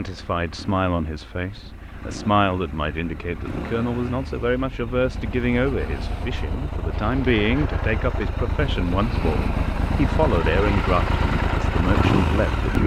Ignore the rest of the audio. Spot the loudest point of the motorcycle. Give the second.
12 s.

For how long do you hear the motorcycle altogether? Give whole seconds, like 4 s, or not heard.
13 s.